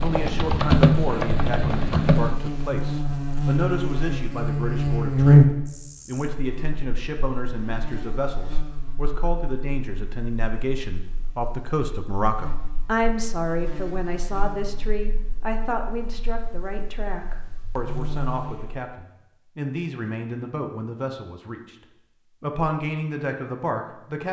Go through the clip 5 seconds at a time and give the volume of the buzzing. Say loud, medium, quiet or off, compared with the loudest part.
medium, loud, quiet, quiet, off.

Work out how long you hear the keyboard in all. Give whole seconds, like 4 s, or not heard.
2 s.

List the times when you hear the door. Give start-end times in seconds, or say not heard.
not heard.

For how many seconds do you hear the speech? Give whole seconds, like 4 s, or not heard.
24 s.